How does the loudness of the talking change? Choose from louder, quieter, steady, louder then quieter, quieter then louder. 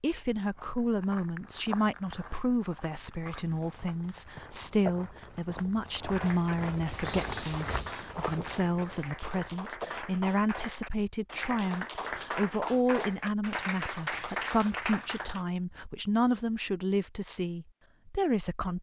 steady.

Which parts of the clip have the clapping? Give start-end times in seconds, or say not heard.
6.0-15.4.